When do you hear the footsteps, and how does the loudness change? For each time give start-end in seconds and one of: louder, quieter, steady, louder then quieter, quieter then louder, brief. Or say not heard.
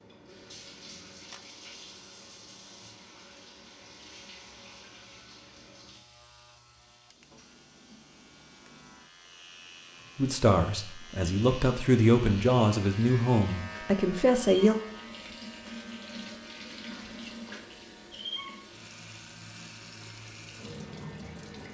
not heard.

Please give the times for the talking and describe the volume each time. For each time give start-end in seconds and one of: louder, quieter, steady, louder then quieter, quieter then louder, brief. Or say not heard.
10.2-14.8 louder.